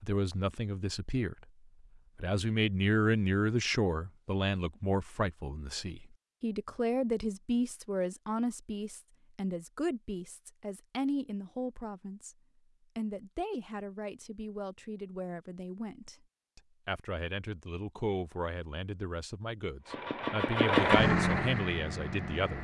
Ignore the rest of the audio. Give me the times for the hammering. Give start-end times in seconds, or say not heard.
not heard.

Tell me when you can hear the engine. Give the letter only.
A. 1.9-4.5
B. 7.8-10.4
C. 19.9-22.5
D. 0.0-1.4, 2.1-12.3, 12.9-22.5
C.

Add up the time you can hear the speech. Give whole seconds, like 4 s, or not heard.
21 s.